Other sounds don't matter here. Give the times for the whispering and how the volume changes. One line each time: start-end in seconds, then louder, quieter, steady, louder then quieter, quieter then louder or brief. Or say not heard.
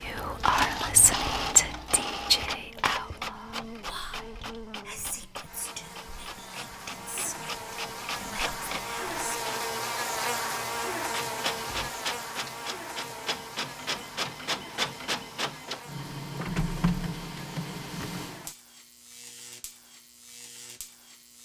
0.0-9.5 quieter.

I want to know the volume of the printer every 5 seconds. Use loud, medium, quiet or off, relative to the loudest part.
loud, medium, loud, loud, off.